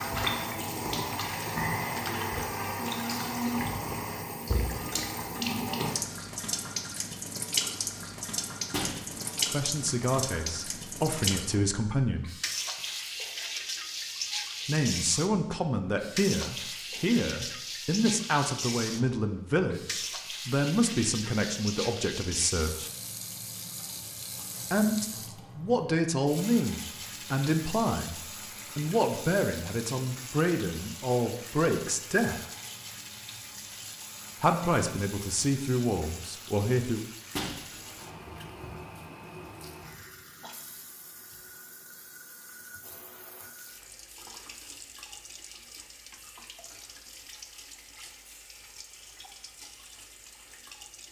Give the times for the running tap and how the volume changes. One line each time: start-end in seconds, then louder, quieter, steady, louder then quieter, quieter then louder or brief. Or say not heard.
0.0-51.0 quieter.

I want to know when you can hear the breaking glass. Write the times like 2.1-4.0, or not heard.
8.7-9.5, 37.4-38.1.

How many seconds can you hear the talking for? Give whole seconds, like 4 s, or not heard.
21 s.